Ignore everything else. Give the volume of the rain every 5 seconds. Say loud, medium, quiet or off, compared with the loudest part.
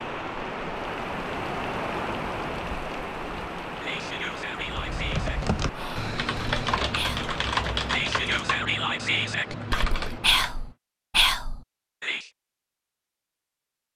loud, medium, off.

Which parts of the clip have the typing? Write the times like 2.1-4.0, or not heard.
4.5-10.7.